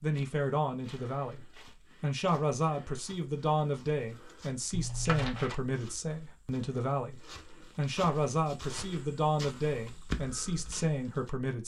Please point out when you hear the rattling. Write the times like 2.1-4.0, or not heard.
4.7-5.5.